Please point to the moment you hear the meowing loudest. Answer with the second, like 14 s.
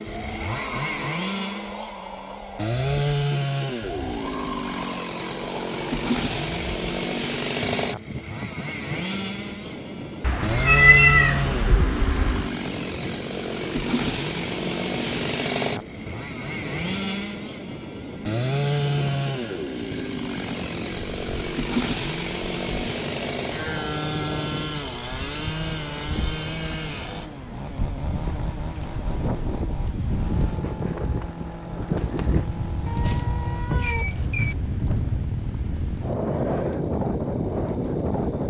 11 s.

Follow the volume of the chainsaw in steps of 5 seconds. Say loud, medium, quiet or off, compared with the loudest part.
loud, loud, loud, loud, loud, medium, medium, medium.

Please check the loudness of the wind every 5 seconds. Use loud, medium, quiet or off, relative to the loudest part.
medium, medium, medium, medium, medium, medium, loud, loud.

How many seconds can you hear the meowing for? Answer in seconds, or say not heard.
4 s.